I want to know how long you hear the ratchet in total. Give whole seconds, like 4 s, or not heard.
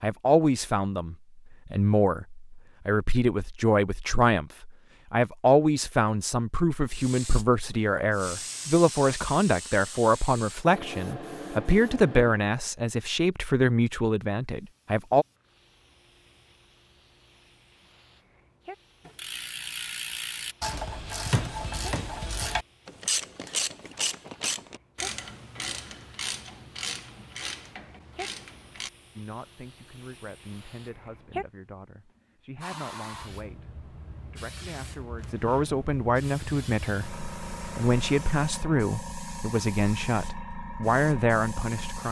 10 s.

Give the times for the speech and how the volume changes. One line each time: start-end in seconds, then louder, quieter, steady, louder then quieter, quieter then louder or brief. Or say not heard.
0.0-15.2 steady
29.1-42.0 louder.